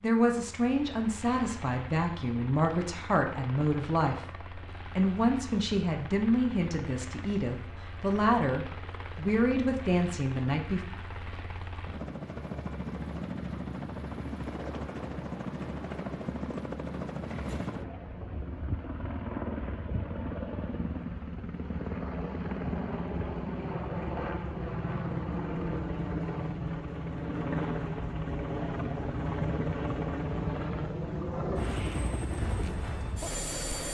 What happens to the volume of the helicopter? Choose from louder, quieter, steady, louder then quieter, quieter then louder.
louder.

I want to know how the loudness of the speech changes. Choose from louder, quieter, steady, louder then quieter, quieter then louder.
steady.